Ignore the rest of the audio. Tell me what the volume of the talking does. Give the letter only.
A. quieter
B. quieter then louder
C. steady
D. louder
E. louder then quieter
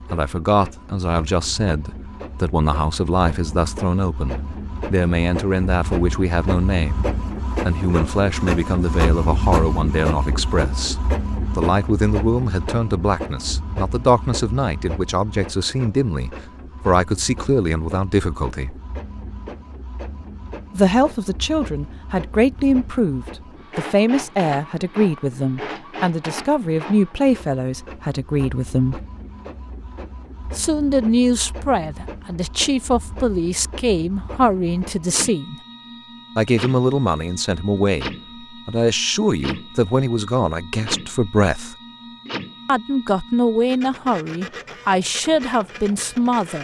C.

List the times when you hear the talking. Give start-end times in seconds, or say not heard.
0.1-18.8, 20.7-29.0, 30.6-35.5, 36.4-41.8, 42.6-46.5.